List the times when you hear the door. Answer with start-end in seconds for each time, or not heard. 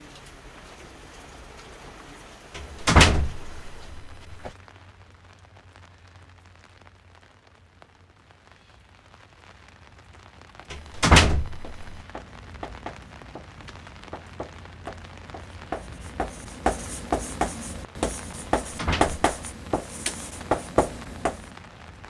2.5-4.5, 10.7-11.9, 18.4-19.2.